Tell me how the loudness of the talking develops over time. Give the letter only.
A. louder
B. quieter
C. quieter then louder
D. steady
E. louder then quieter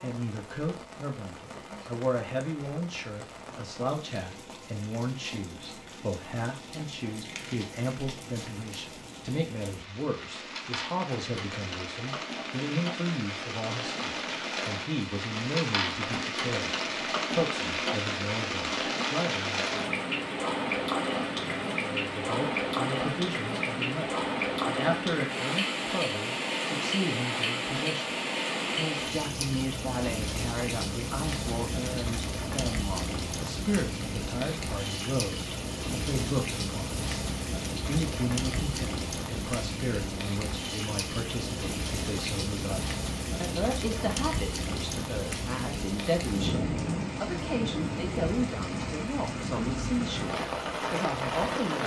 D.